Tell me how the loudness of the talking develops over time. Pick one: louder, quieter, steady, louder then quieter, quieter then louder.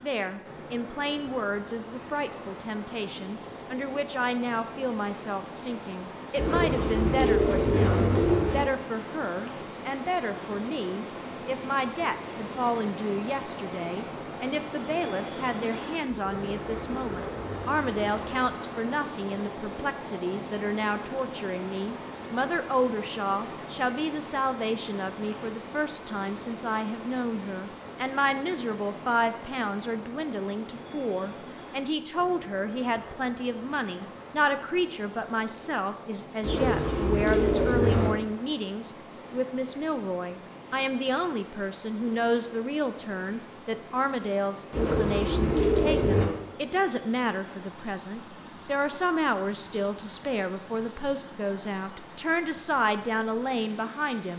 steady.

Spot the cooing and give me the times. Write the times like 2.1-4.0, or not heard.
6.3-8.7, 16.1-18.4, 36.4-38.1, 44.7-46.2.